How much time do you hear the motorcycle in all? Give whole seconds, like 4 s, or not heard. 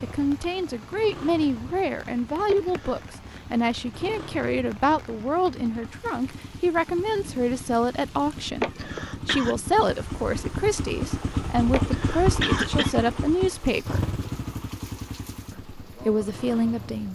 17 s.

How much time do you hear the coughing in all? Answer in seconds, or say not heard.
3 s.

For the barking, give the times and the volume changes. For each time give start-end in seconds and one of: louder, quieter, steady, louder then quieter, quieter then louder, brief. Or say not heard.
not heard.